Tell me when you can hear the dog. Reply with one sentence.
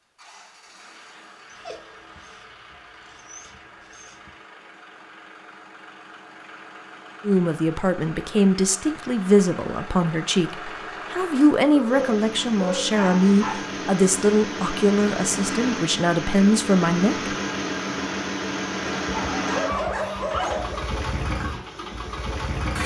You can hear the dog from 1.5 to 4.3 s, from 11.7 to 13.6 s and from 18.9 to 20.8 s.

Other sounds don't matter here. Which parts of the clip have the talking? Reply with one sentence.
The talking can be heard from 7.2 to 17.4 s.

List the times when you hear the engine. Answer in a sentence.
You can hear the engine from 0.0 to 22.8 s.